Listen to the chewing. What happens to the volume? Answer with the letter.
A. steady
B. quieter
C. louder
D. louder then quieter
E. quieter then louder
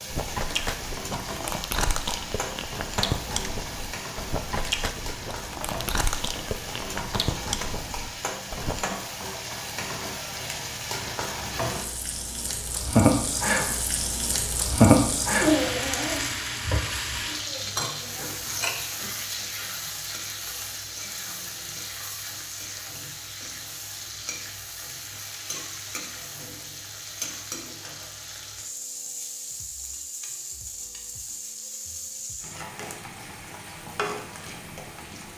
A.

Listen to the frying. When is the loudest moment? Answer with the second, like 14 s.
15 s.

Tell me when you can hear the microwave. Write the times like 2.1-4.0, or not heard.
not heard.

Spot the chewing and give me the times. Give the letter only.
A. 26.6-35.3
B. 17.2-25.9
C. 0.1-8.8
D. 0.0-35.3
C.